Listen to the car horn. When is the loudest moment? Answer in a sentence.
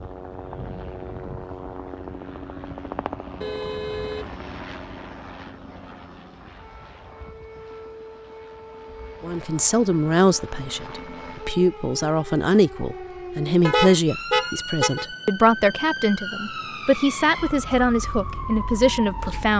The loudest moment of the car horn is at 14 seconds.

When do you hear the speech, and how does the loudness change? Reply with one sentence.
You can hear the speech from 9.2 to 19.5 s, at a steady volume.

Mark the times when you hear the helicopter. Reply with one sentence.
You can hear the helicopter from 0.0 to 11.6 s.